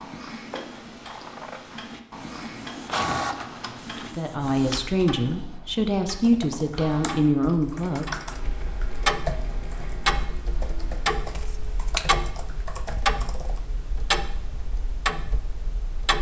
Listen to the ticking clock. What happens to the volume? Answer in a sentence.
The loudness of the ticking clock goes up.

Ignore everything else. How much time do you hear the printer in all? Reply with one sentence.
The printer can be heard for 9 seconds in total.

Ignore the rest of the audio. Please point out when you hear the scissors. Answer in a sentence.
You can hear the scissors from 0.5 to 1.8 s and from 11.3 to 12.1 s.